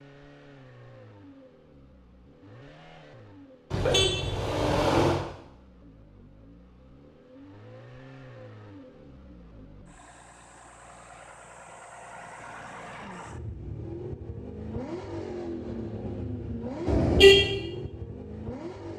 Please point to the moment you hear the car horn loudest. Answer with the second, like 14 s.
17 s.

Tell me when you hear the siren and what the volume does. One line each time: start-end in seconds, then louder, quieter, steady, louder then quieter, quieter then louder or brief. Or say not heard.
not heard.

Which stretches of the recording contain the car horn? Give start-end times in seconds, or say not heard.
3.7-5.2, 16.9-17.5.